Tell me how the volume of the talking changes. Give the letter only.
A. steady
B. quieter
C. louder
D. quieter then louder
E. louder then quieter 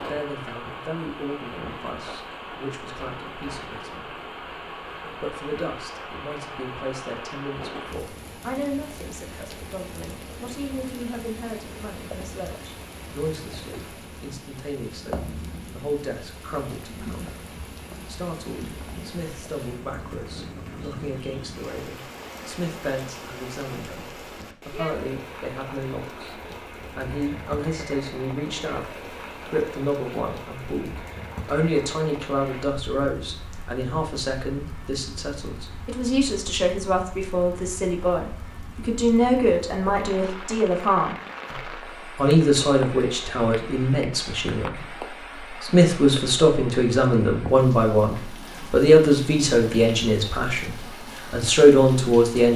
C.